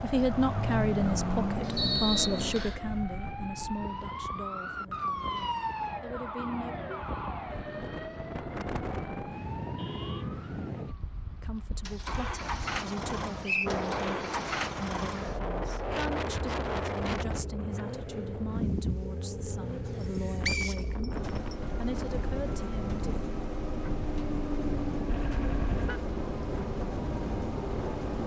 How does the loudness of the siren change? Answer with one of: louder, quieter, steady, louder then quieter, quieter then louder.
louder then quieter.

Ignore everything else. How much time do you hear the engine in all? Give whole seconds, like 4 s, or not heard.
19 s.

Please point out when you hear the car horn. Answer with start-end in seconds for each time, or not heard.
6.3-7.0, 9.8-10.5, 25.1-26.0.